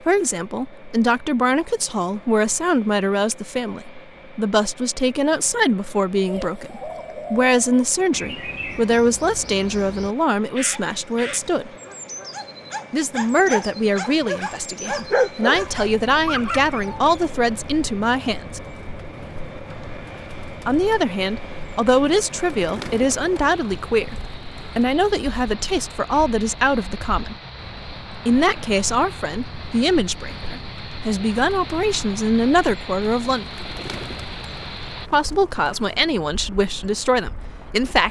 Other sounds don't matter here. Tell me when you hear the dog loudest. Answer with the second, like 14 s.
15 s.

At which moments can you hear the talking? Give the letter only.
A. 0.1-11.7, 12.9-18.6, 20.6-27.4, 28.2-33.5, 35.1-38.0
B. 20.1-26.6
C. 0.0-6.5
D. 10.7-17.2
A.